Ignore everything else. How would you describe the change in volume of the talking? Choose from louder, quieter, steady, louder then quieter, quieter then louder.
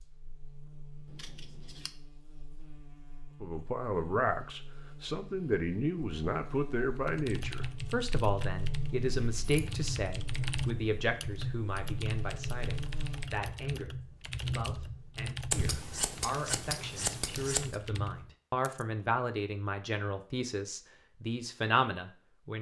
quieter then louder.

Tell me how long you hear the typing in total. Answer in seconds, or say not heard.
12 s.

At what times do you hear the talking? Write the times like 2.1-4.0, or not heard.
3.4-22.5.